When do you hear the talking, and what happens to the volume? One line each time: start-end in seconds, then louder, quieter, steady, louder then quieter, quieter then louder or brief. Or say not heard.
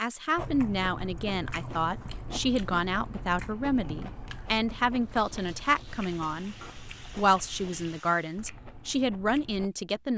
0.0-10.1 steady.